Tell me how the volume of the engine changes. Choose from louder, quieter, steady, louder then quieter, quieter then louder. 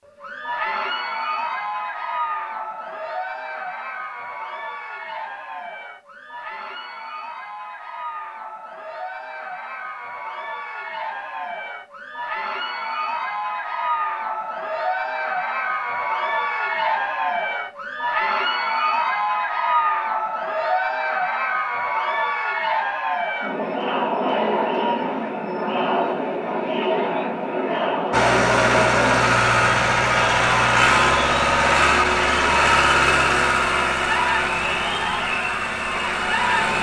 quieter.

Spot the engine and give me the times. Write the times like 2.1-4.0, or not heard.
28.1-36.7.